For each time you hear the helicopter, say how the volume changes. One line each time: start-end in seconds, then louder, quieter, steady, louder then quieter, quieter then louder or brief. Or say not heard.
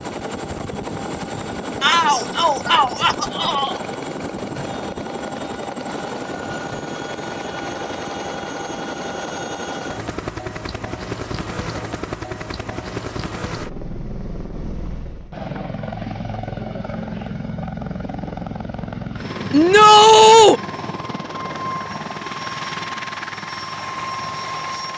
0.0-24.9 steady.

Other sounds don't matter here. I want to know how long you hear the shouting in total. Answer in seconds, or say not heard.
3 s.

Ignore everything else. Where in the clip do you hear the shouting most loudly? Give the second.
20 s.